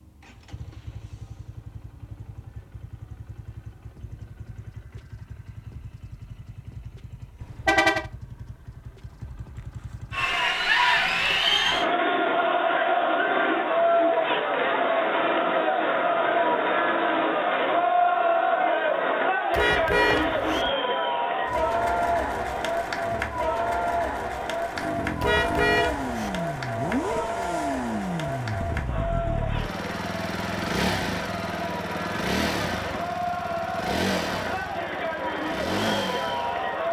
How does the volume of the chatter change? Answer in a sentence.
The volume of the chatter goes down.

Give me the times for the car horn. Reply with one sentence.
The car horn can be heard from 7.4 to 8.1 s, from 19.5 to 20.7 s and from 25.2 to 26.4 s.